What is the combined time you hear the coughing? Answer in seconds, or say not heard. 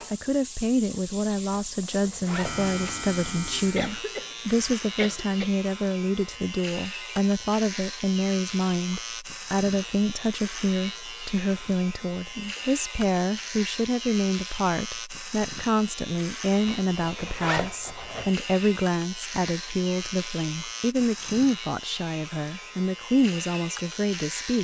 2 s.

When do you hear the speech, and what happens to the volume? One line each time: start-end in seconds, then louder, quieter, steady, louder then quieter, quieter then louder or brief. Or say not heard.
0.1-24.5 steady.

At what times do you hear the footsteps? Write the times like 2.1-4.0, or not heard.
not heard.